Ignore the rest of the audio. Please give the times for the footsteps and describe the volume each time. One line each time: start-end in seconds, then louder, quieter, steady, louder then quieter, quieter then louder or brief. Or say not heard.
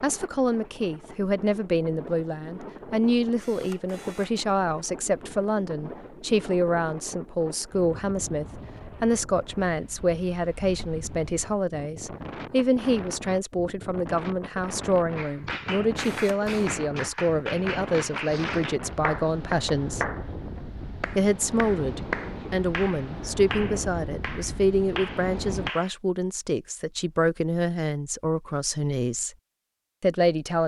not heard.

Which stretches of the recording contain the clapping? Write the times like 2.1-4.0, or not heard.
15.2-25.9.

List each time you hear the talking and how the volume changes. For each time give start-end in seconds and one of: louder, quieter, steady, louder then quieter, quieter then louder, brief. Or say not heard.
0.0-20.1 steady
21.1-29.3 steady
30.0-30.6 brief.